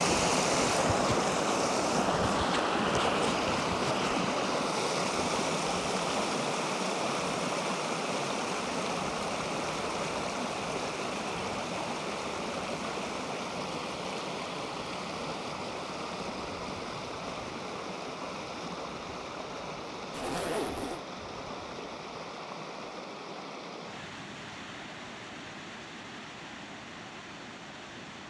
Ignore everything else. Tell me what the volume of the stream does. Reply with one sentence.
The volume of the stream goes down.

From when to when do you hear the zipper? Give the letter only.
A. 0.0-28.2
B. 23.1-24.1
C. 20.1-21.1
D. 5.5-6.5
C.